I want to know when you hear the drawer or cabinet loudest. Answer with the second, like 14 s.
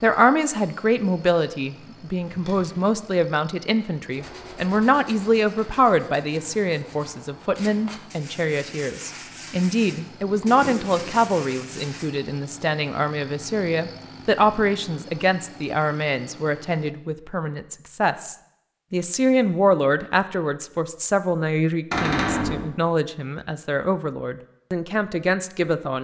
22 s.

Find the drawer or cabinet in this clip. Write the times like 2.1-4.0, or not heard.
2.2-3.0, 10.2-11.3, 21.9-22.6.